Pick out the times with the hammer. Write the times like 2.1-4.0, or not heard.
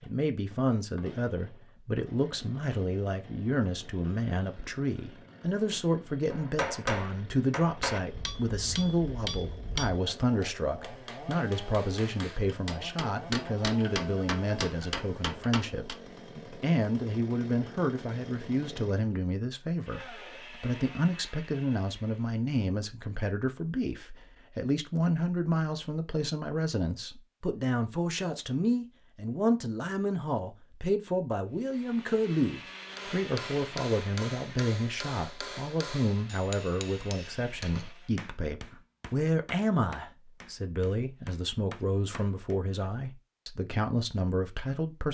6.3-16.0, 33.0-42.5.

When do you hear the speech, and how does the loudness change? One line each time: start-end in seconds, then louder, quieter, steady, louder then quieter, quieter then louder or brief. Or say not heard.
0.0-45.0 steady.